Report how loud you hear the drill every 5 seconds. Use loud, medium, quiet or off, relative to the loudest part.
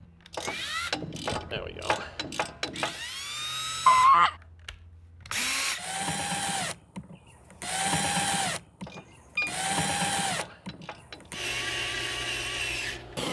medium, loud, loud.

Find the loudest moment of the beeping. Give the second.
4 s.